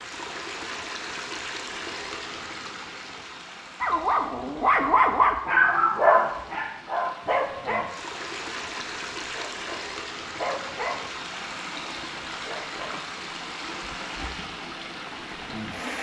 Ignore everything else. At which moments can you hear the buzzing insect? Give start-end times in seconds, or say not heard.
not heard.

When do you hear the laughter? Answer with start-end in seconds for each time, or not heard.
not heard.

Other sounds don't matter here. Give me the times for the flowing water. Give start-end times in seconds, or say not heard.
0.0-15.9.